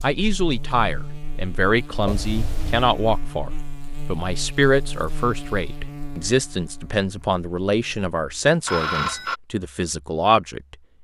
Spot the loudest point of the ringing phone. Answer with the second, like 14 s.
9 s.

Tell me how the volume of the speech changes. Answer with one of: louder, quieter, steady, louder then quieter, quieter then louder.
steady.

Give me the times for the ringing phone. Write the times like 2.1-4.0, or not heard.
2.0-3.0, 8.7-9.4.